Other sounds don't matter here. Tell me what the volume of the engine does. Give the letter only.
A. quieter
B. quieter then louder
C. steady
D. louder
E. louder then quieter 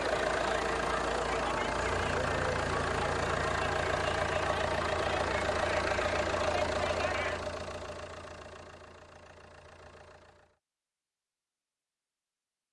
A.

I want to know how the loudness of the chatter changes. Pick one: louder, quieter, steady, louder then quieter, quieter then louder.
steady.